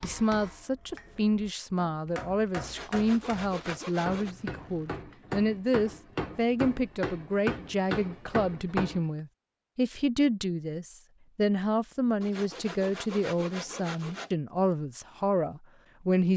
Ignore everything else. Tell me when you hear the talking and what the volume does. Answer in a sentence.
You can hear the talking from 0.0 to 16.3 s, at a steady volume.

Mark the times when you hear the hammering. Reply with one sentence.
You can hear the hammering from 0.0 to 9.1 s.